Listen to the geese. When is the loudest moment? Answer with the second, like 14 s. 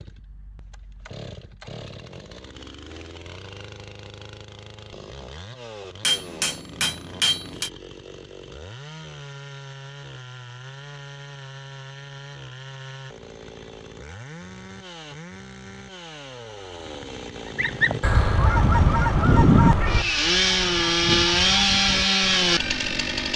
20 s.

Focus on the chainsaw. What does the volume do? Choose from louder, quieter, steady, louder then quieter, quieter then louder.
louder.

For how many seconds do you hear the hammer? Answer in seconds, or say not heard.
2 s.